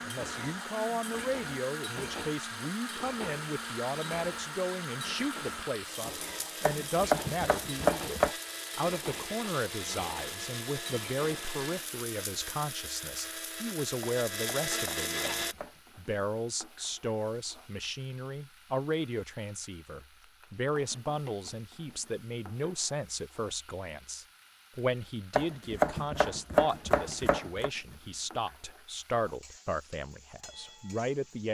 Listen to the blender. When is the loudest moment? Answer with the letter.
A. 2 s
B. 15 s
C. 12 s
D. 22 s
B.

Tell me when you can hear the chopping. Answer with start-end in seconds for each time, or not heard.
6.6-8.3, 14.0-16.0, 25.4-27.7.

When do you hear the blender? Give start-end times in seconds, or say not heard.
0.0-15.6.